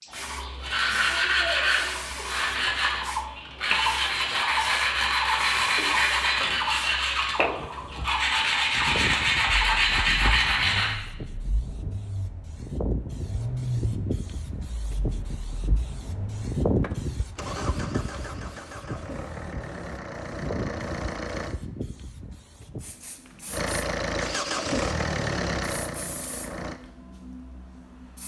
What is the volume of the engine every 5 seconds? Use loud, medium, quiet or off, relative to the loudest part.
off, off, medium, medium, loud, loud.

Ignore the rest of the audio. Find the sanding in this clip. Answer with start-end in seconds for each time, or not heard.
0.1-10.9.